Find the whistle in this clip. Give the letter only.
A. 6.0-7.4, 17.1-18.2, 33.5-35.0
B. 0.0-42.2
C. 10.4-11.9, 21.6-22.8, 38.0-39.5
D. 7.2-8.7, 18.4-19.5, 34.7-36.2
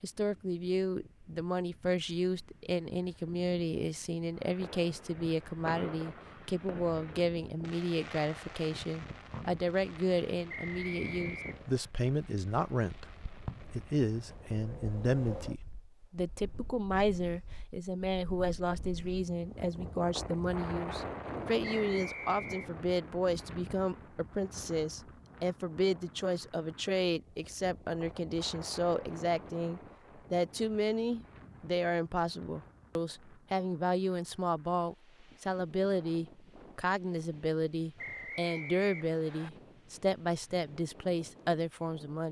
C.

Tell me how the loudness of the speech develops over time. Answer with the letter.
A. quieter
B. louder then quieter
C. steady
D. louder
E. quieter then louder
C.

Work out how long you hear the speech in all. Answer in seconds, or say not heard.
42 s.